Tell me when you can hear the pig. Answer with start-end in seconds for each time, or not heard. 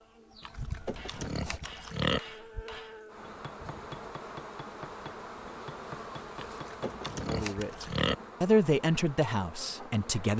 0.4-2.2, 6.4-8.2.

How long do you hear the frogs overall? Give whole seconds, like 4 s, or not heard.
not heard.